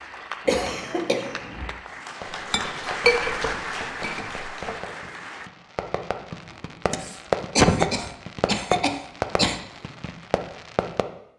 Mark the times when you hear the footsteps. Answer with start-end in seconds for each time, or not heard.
not heard.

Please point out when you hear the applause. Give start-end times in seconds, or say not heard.
0.0-5.5.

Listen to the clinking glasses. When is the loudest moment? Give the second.
3 s.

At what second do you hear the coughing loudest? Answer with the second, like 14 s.
8 s.